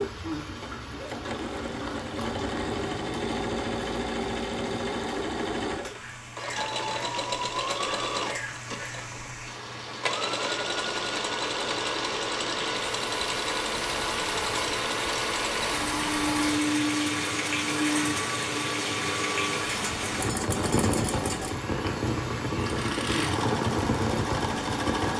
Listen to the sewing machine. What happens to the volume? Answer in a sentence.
The volume of the sewing machine stays about the same.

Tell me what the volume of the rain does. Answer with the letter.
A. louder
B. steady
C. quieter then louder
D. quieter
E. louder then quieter
A.